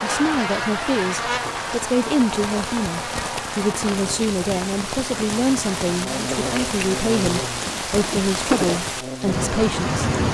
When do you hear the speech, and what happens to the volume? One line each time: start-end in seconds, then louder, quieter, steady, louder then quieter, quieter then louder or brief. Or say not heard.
0.0-10.1 steady.